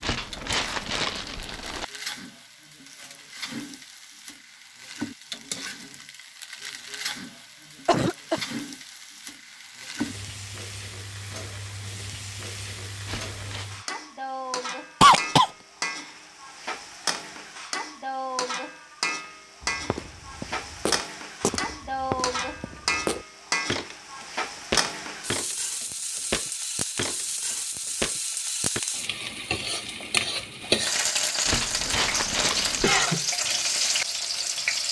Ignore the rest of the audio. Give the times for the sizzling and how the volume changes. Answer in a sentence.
You can hear the sizzling from 0.1 to 34.8 s, getting louder.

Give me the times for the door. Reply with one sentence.
You can't hear the door here.